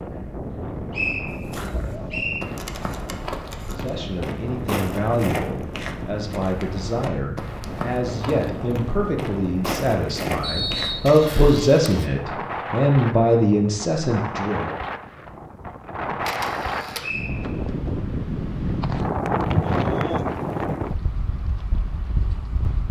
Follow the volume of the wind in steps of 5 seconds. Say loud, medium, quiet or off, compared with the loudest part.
medium, medium, medium, loud, loud.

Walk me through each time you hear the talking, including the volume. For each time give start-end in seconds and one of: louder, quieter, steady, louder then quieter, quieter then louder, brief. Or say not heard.
3.6-14.8 louder.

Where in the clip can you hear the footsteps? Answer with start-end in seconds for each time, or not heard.
1.2-11.2.